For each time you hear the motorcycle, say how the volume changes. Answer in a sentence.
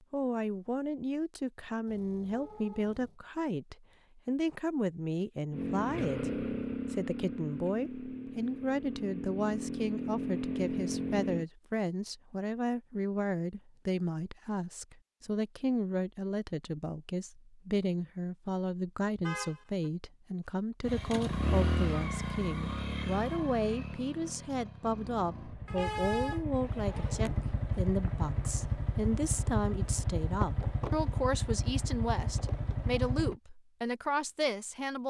You can hear the motorcycle from 5.5 to 11.4 s, getting quieter then louder; and from 20.8 to 33.4 s, getting quieter then louder.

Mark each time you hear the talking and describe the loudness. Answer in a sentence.
The talking can be heard from 0.1 to 35.0 s, at a steady volume.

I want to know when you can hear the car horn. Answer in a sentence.
The car horn can be heard from 1.9 to 3.2 s, from 19.2 to 19.9 s and from 25.6 to 26.4 s.